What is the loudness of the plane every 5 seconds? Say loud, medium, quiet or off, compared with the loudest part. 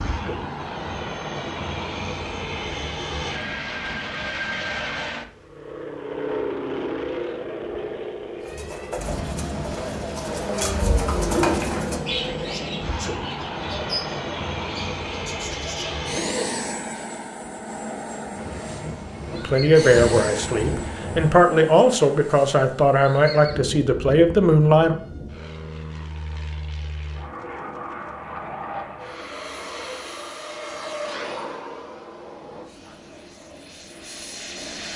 loud, loud, loud, loud, medium, medium, medium.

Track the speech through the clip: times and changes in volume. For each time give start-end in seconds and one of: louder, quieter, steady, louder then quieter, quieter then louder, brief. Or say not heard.
19.4-24.9 steady.